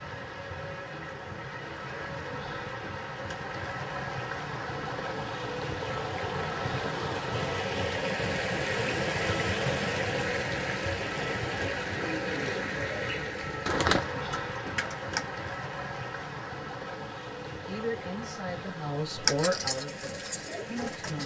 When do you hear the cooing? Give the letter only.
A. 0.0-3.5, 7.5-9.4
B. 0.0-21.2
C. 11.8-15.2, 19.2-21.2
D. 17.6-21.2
C.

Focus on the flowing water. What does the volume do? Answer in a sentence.
The loudness of the flowing water goes up, then down.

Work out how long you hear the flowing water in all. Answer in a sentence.
You can hear the flowing water for 21 seconds altogether.